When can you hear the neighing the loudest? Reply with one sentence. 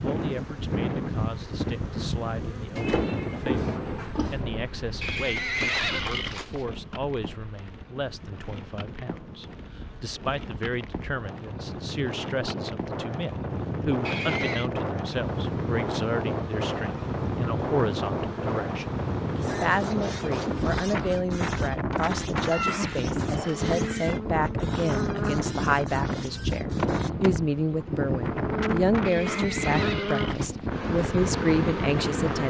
The loudest moment of the neighing is at 6 seconds.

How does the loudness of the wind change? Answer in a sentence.
The volume of the wind goes down, then up.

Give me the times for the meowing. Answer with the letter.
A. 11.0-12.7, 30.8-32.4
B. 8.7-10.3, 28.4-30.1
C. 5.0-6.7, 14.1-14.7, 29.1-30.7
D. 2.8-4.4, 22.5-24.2
D.